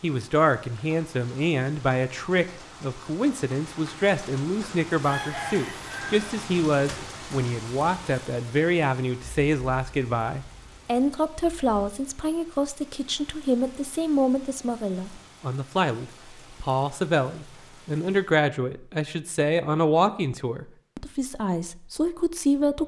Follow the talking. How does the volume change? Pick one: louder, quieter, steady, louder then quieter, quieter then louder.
steady.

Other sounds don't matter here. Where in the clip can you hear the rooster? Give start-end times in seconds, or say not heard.
5.0-6.3.